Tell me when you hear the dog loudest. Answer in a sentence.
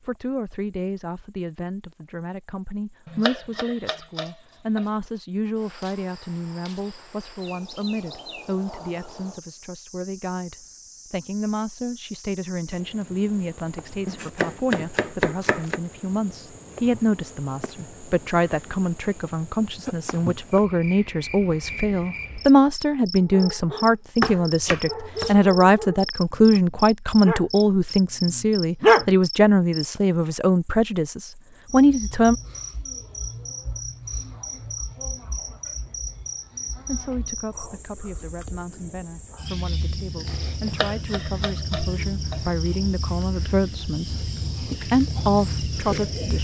The volume of the dog peaks at 29 seconds.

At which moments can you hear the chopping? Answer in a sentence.
The chopping can be heard from 3.0 to 4.8 s, from 14.1 to 15.8 s, from 24.2 to 25.4 s and from 40.6 to 42.4 s.